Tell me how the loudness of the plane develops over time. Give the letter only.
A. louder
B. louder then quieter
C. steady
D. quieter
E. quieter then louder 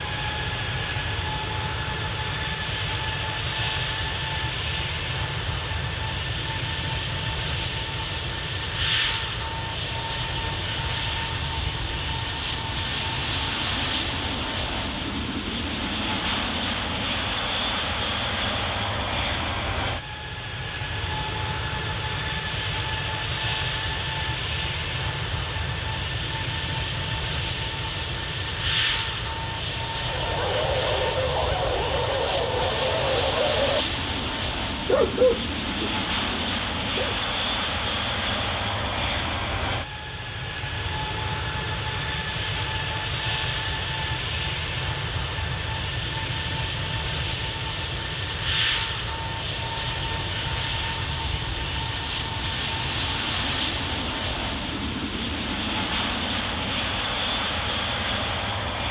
C.